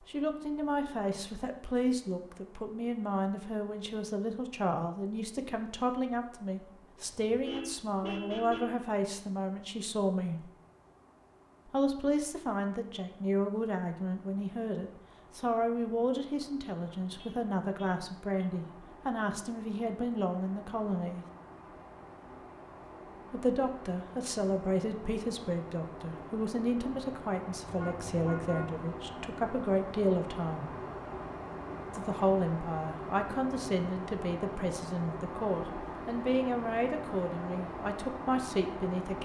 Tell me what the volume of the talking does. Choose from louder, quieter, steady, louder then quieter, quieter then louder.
steady.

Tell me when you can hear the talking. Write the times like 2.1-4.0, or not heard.
0.1-10.5, 11.7-21.2, 23.3-30.8, 31.9-39.2.